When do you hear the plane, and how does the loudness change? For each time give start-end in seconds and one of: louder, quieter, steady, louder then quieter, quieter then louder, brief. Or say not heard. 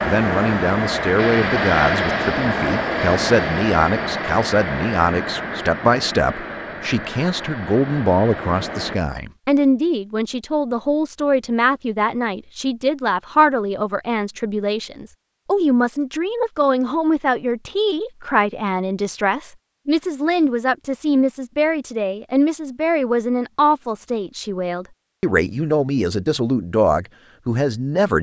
0.0-9.0 quieter.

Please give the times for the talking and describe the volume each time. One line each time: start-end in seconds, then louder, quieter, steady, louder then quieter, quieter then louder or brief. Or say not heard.
0.0-28.1 steady.